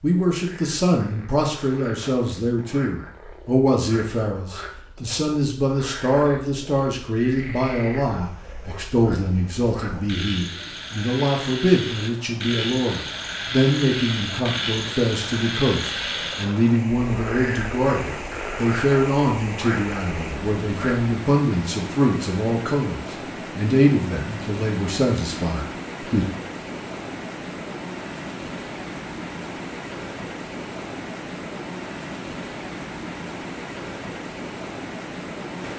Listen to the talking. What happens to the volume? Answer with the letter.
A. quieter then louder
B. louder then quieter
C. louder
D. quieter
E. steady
E.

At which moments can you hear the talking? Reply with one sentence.
You can hear the talking from 0.0 to 26.2 s.